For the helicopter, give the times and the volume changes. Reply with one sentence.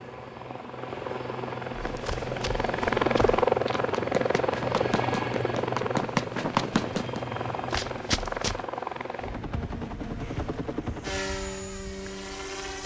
You can hear the helicopter from 0.0 to 12.8 s, getting louder then quieter.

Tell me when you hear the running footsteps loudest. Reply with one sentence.
The loudest moment of the running footsteps is at 7 seconds.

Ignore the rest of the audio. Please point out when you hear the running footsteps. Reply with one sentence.
The running footsteps can be heard from 1.8 to 8.7 s.